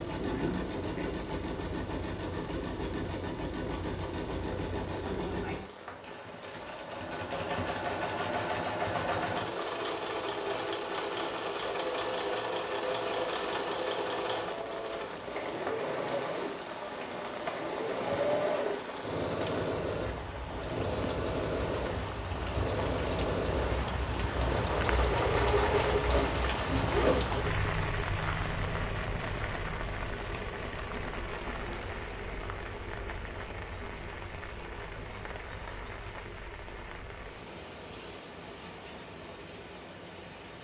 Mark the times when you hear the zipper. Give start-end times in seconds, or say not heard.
26.1-27.2.